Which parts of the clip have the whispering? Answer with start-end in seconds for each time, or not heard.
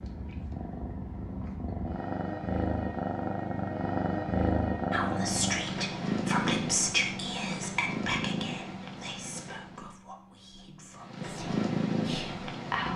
4.9-12.9.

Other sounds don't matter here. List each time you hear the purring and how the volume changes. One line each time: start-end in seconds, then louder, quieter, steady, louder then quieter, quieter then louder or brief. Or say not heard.
0.0-9.9 louder then quieter
10.9-12.9 brief.